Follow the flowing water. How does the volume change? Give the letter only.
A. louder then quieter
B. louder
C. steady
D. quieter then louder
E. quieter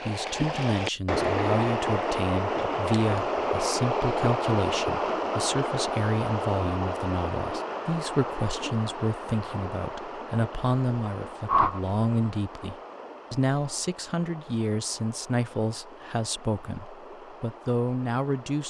E.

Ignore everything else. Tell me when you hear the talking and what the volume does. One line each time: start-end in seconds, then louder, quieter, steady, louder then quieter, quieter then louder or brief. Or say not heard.
0.1-18.6 steady.